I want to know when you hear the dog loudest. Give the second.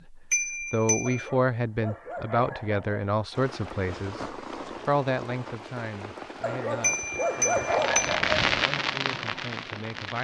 8 s.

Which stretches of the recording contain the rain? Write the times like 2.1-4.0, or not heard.
3.3-10.1.